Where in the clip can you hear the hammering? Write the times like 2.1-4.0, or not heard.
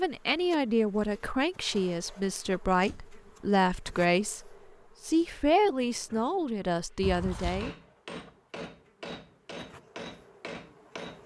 6.8-11.2.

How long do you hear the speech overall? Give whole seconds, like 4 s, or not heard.
8 s.